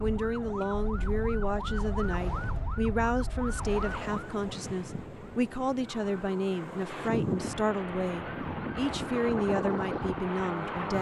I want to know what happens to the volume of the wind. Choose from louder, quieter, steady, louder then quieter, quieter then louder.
louder.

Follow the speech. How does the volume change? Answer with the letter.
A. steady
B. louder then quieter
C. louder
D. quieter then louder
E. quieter
A.